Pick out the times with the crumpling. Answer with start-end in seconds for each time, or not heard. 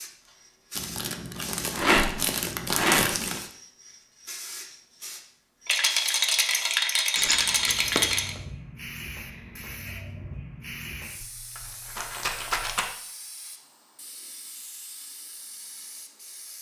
0.8-3.5, 7.2-8.4, 12.1-12.8.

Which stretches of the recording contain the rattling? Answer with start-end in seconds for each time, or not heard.
1.7-3.1, 5.7-8.3, 11.2-12.9.